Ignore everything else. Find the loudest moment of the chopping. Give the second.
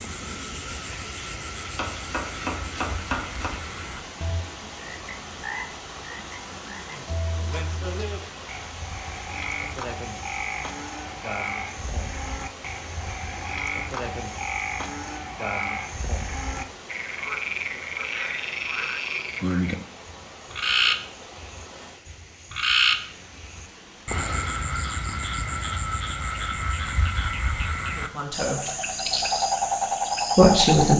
3 s.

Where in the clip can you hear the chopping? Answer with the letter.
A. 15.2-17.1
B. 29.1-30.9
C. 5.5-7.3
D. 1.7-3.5
D.